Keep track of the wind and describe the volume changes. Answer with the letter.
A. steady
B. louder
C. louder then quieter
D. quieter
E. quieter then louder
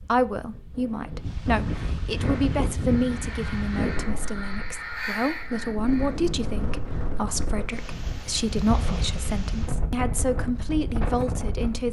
A.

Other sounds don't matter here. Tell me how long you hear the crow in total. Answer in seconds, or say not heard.
4 s.